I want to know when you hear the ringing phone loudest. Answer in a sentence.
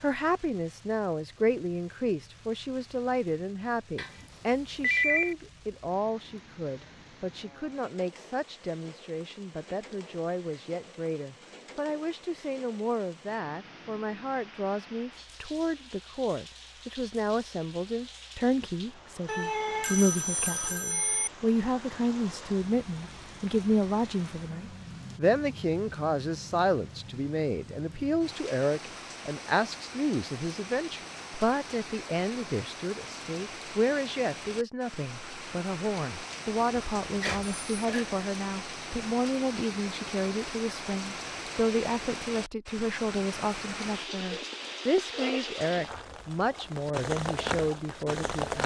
The loudest moment of the ringing phone is at 5 seconds.